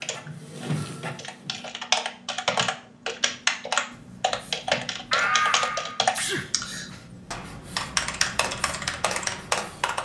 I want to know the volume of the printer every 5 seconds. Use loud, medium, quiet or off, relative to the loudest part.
loud, off.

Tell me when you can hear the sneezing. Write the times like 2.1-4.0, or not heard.
5.1-7.0.